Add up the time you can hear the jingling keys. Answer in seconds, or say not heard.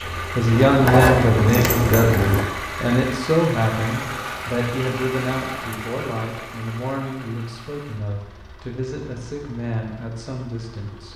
2 s.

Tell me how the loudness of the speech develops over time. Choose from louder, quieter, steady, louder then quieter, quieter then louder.
quieter.